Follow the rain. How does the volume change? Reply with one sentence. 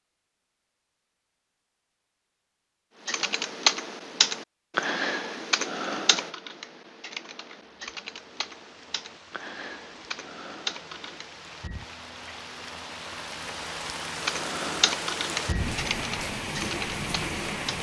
The volume of the rain goes up.